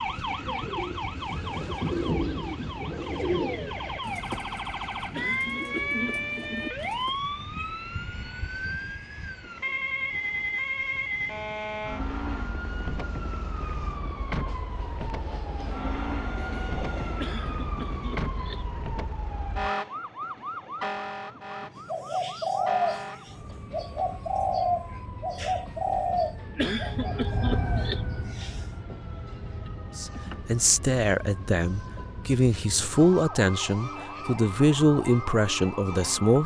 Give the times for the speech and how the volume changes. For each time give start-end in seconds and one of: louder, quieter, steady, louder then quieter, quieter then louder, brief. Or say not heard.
29.9-36.4 steady.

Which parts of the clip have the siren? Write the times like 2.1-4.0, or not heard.
0.0-36.4.